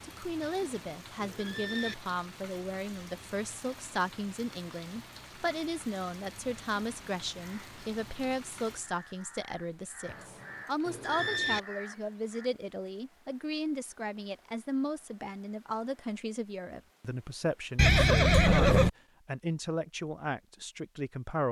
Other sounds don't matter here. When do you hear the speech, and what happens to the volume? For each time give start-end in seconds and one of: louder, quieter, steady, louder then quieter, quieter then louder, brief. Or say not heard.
0.0-21.4 steady.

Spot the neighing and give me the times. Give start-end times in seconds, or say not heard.
0.4-1.9, 10.1-11.6, 17.8-18.9.